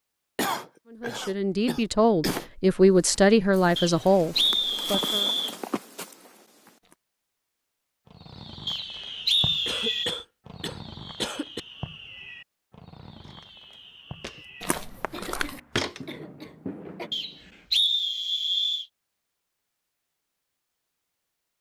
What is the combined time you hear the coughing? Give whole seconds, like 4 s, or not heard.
6 s.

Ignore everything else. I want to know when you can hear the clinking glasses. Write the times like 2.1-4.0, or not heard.
not heard.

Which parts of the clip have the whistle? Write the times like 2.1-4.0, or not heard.
3.8-5.5, 8.7-10.2, 17.1-18.9.